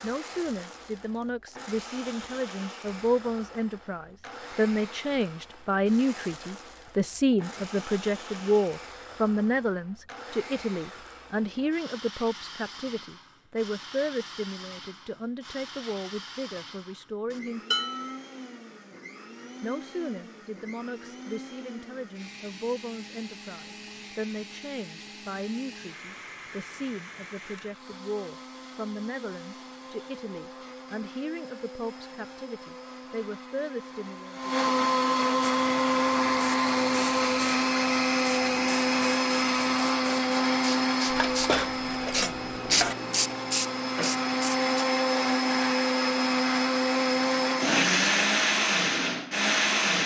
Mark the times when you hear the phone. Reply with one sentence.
The phone can't be heard in this clip.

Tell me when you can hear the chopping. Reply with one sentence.
You can't hear the chopping here.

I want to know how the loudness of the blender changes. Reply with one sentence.
The volume of the blender goes up.